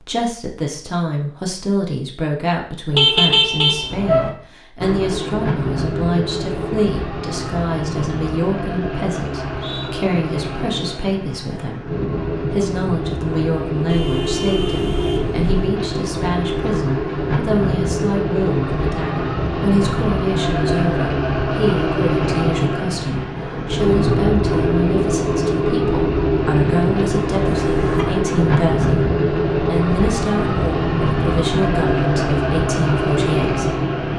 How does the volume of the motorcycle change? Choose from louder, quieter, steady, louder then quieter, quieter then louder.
louder.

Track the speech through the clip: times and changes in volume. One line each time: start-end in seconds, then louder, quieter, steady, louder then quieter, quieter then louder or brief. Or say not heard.
0.0-33.8 steady.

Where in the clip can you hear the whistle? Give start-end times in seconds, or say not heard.
9.3-9.9.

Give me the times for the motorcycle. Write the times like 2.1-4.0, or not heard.
4.8-34.1.